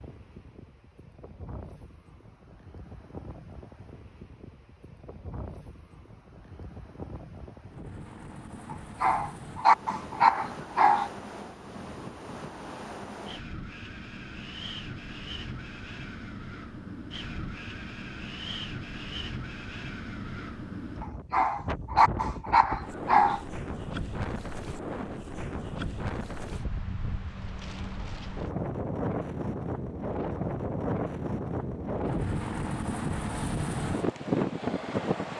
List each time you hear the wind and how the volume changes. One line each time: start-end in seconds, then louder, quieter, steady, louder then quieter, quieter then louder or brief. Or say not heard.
0.0-35.3 louder.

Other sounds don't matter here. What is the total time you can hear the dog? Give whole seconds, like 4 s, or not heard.
5 s.